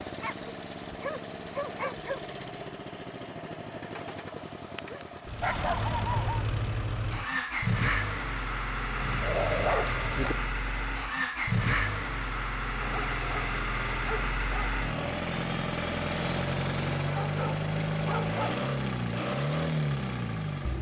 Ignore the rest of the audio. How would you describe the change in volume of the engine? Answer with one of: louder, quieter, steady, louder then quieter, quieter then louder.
louder.